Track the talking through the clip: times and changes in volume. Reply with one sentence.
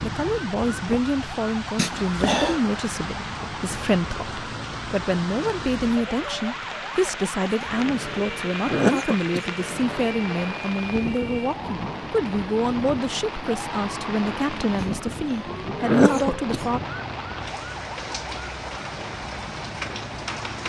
You can hear the talking from 0.0 to 16.8 s, at a steady volume.